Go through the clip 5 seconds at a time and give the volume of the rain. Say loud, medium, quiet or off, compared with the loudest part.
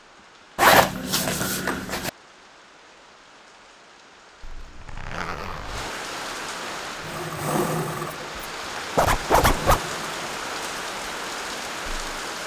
quiet, loud, loud.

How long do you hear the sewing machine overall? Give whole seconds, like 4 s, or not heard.
4 s.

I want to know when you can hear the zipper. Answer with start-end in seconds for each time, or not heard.
0.6-2.1, 4.4-5.9, 8.9-9.8.